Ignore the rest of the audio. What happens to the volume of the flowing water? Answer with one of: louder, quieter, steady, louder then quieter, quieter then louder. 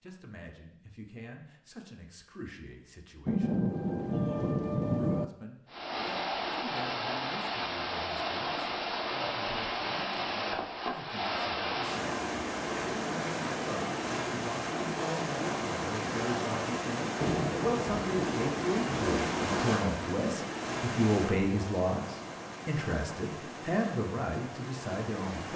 quieter.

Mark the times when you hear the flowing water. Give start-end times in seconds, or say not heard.
5.7-25.5.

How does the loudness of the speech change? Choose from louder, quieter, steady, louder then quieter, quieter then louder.
louder.